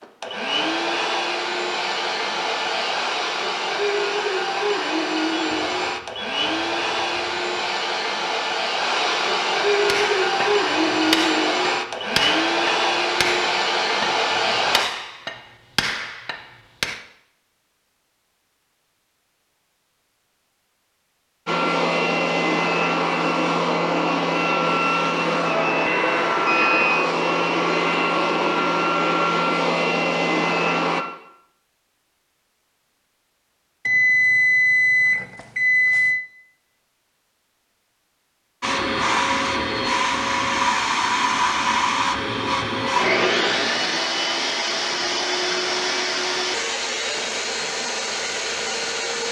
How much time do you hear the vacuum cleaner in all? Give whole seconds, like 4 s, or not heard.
35 s.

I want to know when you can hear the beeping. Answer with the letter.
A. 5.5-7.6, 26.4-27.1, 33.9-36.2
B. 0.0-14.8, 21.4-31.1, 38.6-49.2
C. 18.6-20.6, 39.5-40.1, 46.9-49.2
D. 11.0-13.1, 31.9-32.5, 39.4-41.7
A.